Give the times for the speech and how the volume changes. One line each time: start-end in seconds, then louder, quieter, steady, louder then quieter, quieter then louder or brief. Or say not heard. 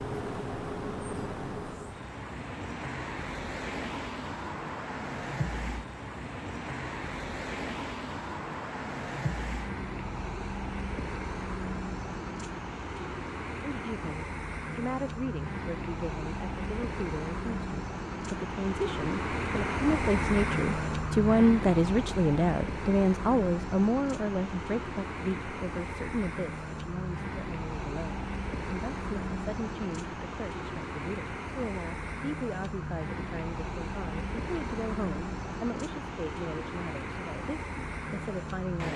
13.6-38.9 louder then quieter.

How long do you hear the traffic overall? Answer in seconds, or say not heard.
39 s.